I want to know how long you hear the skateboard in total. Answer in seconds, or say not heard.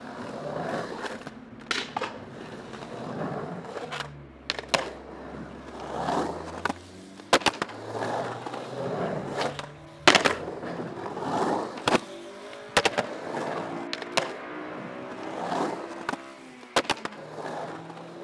18 s.